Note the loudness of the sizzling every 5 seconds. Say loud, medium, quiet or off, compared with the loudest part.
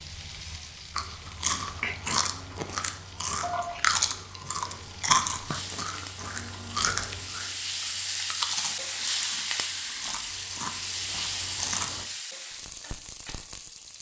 medium, loud, loud.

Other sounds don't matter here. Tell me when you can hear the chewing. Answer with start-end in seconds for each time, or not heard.
0.9-12.1.